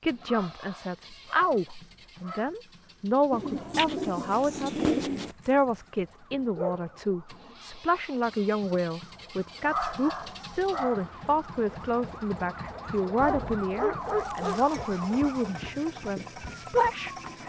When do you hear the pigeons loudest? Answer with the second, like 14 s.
5 s.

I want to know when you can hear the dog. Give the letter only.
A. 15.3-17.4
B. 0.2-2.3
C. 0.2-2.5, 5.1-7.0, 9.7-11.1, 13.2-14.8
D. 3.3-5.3
C.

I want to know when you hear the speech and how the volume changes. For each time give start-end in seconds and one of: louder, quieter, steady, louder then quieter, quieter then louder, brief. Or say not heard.
0.0-17.1 steady.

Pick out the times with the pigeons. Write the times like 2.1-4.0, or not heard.
3.3-5.3.